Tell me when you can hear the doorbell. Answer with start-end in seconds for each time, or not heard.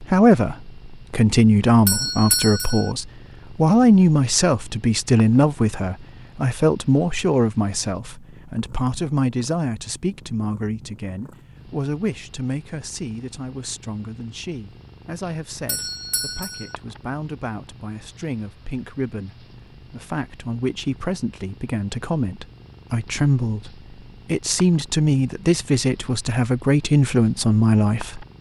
1.9-2.9, 15.7-16.8.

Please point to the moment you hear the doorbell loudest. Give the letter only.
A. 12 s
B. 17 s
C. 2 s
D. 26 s
C.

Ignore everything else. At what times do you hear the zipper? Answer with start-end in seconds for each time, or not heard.
not heard.